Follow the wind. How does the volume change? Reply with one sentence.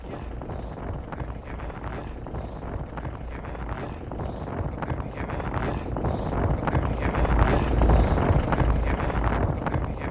The volume of the wind goes up.